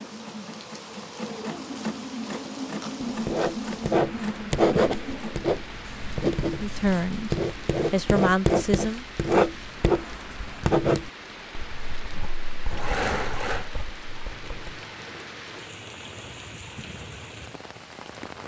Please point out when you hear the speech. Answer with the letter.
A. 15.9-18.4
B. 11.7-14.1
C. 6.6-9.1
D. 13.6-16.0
C.